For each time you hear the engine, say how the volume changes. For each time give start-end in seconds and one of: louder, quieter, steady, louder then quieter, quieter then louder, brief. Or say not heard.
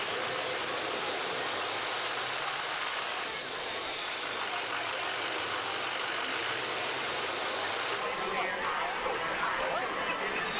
0.0-10.5 quieter.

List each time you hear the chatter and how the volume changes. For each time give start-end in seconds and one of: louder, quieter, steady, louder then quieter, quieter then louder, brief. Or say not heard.
0.0-10.5 louder.